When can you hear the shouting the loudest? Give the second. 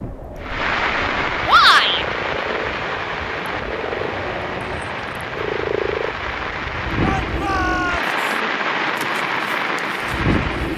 2 s.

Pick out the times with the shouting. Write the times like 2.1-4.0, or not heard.
1.4-2.0, 7.0-8.2.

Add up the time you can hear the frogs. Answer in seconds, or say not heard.
11 s.